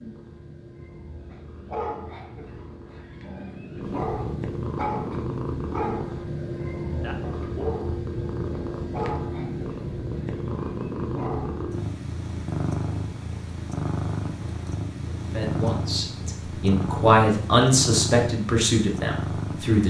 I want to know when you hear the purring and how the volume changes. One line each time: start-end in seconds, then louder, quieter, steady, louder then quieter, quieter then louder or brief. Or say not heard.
0.0-19.8 louder.